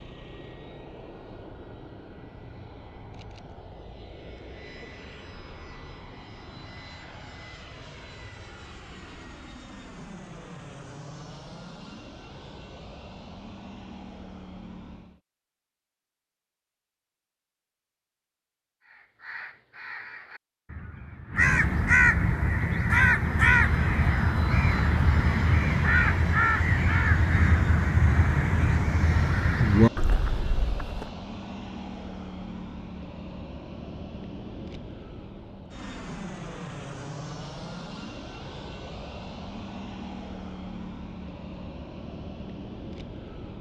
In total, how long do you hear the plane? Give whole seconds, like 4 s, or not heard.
35 s.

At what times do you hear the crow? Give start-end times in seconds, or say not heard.
18.9-31.1.